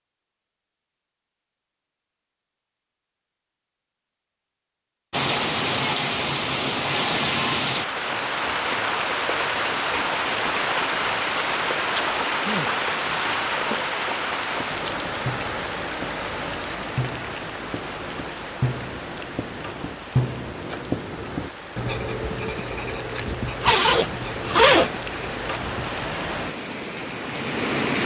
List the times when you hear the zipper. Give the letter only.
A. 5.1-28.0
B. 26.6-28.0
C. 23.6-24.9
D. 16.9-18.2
C.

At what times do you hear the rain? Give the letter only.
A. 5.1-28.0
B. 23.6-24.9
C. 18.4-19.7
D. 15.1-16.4
A.